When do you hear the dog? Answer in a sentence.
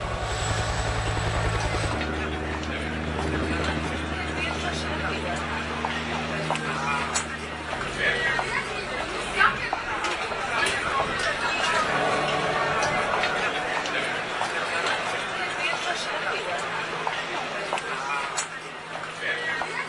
You can't hear the dog here.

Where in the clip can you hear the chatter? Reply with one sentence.
The chatter can be heard from 0.0 to 19.8 s.